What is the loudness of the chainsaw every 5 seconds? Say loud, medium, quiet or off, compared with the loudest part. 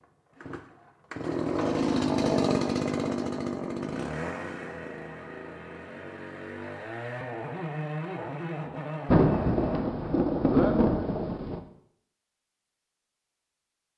loud, medium, off.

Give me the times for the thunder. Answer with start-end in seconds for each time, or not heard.
9.1-11.6.